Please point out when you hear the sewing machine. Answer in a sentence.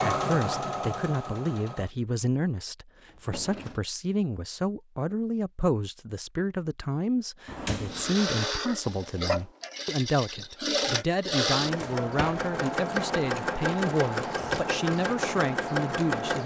The sewing machine can be heard from 0.0 to 1.9 s and from 7.9 to 16.4 s.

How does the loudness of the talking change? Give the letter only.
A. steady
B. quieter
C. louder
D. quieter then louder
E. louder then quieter
A.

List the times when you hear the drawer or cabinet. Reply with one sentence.
You can hear the drawer or cabinet from 3.0 to 3.8 s, from 7.5 to 8.2 s and from 11.5 to 12.4 s.